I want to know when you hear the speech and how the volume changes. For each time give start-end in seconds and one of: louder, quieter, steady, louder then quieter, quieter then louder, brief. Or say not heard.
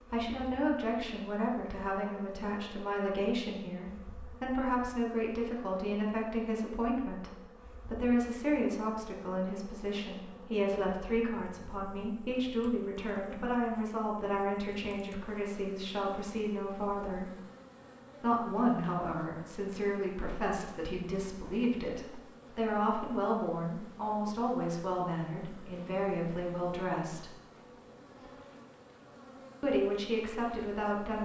0.1-17.4 steady
18.2-27.3 steady
29.6-31.2 brief.